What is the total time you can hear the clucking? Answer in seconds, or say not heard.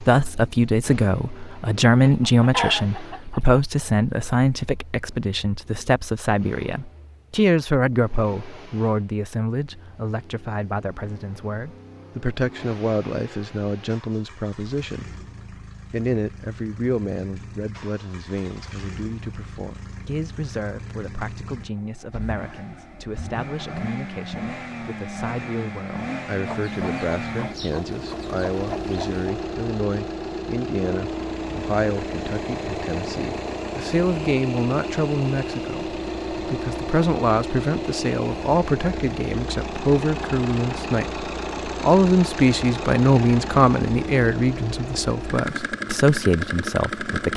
4 s.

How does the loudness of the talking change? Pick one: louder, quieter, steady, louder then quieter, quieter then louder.
quieter then louder.